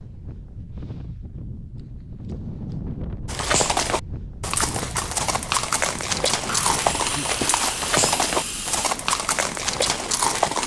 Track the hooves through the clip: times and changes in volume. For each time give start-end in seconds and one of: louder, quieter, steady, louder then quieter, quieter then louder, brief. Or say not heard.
3.2-10.6 steady.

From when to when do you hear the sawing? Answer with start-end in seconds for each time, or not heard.
6.5-8.9.